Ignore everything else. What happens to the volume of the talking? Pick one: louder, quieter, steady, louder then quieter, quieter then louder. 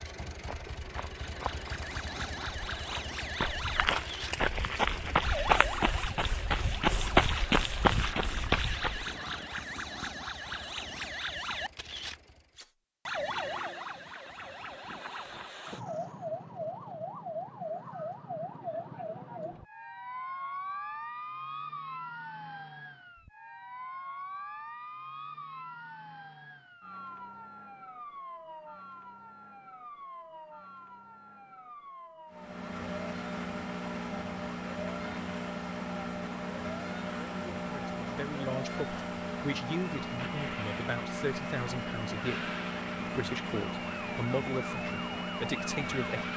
steady.